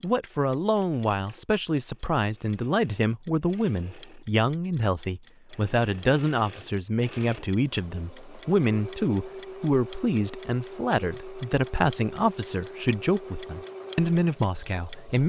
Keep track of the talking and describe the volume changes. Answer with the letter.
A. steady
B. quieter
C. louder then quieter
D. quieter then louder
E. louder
A.